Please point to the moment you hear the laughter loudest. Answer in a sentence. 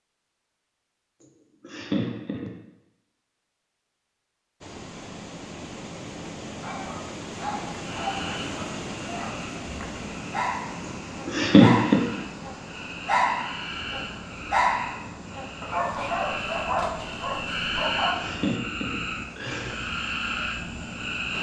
The loudest moment of the laughter is at 12 seconds.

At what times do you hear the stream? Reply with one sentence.
The stream can be heard from 4.6 to 21.3 s.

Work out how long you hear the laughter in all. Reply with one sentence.
The laughter can be heard for 4 seconds in total.